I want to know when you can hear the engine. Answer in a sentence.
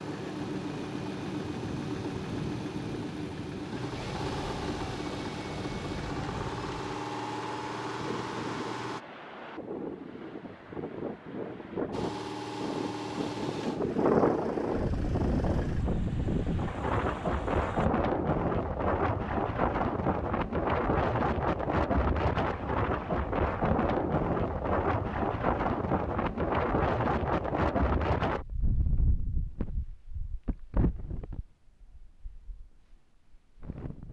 You can hear the engine from 0.0 to 9.0 s and from 11.9 to 17.9 s.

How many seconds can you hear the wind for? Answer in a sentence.
You can hear the wind for 34 seconds altogether.